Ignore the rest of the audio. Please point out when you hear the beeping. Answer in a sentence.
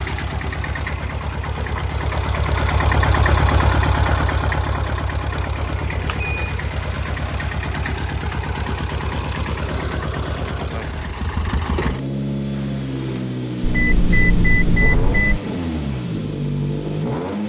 The beeping can be heard from 5.8 to 6.5 s and from 13.6 to 15.4 s.